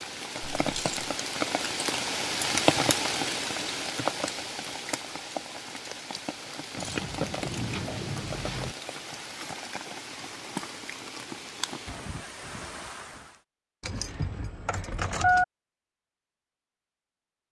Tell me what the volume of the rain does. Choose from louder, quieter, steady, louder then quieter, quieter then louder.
quieter.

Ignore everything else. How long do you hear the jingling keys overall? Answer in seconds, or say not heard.
4 s.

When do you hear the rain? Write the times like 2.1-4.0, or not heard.
0.0-13.4.